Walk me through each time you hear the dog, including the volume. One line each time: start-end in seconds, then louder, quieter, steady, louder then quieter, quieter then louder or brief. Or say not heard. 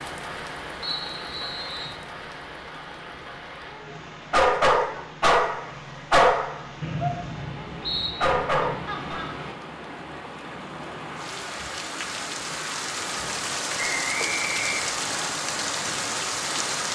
3.7-9.2 quieter then louder.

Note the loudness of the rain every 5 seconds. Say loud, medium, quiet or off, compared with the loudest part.
medium, medium, loud, loud.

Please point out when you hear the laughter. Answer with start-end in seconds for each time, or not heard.
8.8-9.5.